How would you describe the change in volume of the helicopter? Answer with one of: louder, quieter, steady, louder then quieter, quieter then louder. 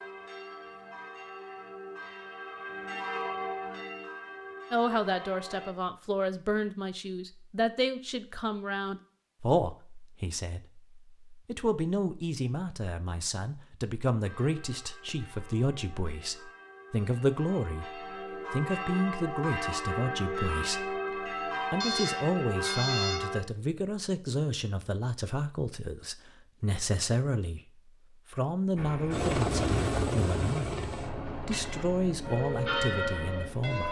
quieter.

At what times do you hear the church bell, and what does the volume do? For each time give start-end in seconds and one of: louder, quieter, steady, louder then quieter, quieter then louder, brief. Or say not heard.
0.0-5.8 louder then quieter
14.2-23.4 louder
31.4-33.8 brief.